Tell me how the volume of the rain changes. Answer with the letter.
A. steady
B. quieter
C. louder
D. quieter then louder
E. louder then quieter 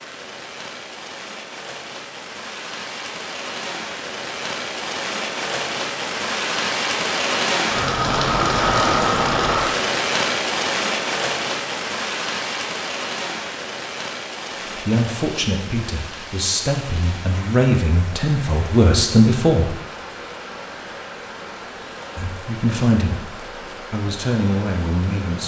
E.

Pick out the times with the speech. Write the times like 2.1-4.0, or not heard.
14.7-19.8, 22.1-25.4.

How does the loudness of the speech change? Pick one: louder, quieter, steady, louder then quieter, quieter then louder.
louder then quieter.